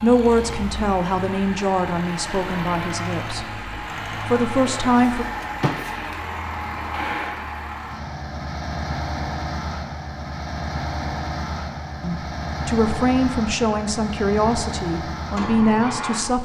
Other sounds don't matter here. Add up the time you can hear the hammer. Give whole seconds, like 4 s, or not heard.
not heard.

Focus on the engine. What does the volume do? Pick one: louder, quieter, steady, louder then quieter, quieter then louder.
steady.